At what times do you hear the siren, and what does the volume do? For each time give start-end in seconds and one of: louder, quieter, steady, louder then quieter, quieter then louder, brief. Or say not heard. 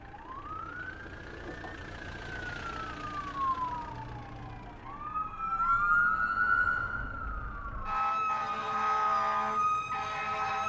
0.0-10.6 louder.